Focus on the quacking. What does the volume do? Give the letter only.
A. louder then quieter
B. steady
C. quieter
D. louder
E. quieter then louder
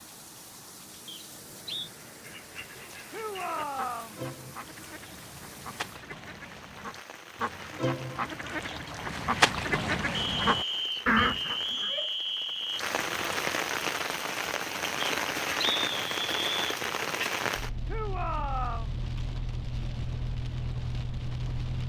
D.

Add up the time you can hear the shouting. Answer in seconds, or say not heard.
3 s.